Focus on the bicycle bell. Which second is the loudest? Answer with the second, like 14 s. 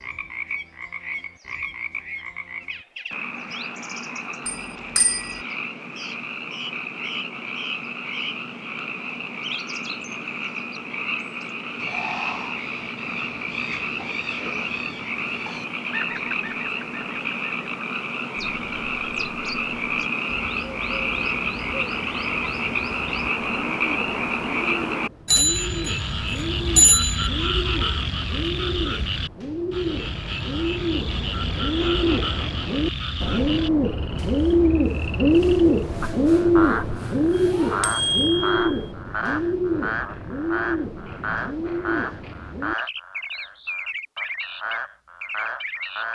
27 s.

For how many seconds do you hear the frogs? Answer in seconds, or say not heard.
46 s.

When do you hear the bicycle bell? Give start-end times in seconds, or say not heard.
4.5-5.4, 25.2-27.3, 37.4-38.9.